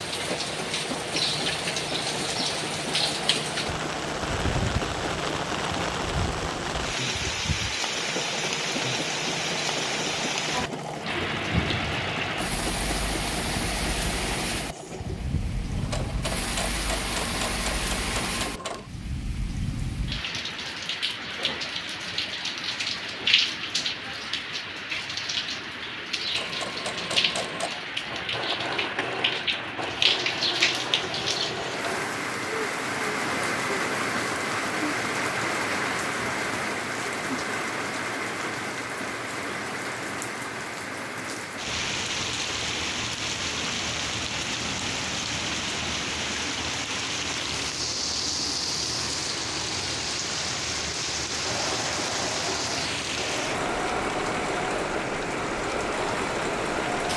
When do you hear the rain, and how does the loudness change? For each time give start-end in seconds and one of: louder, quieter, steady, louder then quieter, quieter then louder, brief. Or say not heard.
0.0-57.1 steady.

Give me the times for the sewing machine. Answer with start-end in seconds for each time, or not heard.
0.0-18.9, 26.3-32.1, 51.4-57.1.